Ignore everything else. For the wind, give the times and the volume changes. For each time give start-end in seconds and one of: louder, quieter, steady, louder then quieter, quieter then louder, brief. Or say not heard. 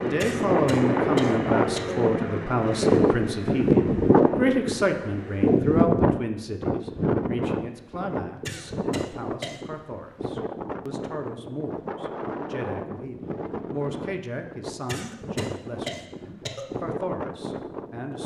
0.0-18.2 quieter.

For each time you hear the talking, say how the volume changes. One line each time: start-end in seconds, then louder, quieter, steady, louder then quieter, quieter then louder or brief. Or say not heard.
0.0-18.2 quieter.